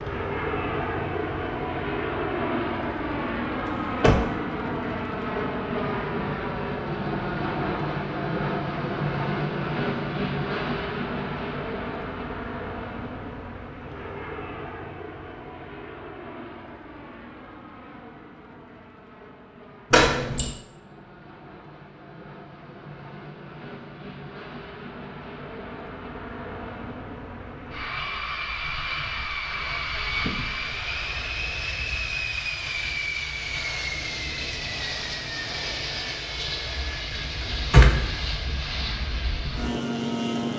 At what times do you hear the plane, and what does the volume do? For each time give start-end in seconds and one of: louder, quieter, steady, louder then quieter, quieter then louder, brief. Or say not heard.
0.0-40.5 quieter then louder.